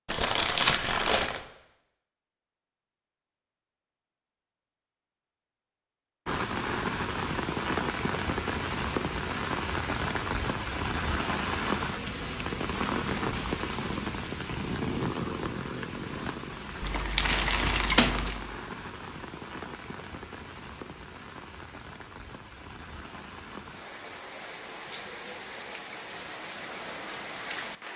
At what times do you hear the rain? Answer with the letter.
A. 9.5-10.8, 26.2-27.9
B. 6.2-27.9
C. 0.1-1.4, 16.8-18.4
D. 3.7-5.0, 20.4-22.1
B.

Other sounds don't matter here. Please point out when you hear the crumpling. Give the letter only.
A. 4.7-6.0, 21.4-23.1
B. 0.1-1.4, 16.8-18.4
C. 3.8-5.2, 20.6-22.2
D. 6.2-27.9
B.